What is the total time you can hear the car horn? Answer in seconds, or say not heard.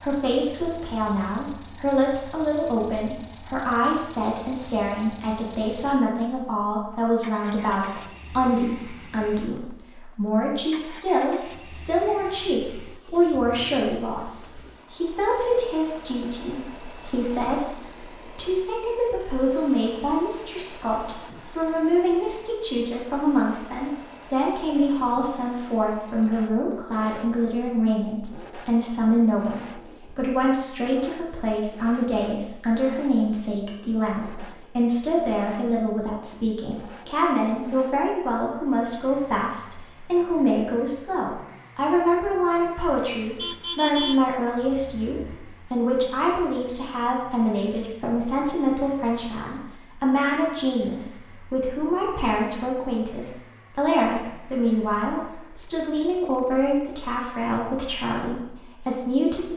2 s.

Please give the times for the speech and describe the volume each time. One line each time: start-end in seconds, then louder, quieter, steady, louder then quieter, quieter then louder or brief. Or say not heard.
0.0-59.5 steady.